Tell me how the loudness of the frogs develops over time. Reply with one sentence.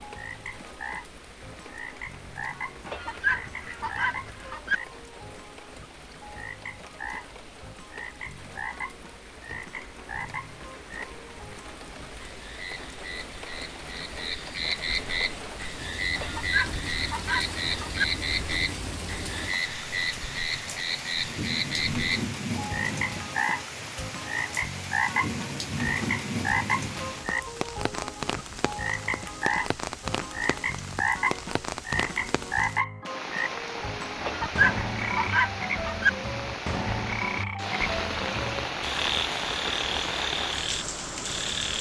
The loudness of the frogs goes up.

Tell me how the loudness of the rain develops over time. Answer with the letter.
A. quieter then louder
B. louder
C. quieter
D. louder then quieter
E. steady
B.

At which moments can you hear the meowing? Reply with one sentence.
You can't hear the meowing here.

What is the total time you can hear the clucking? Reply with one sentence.
The clucking can be heard for 6 seconds in total.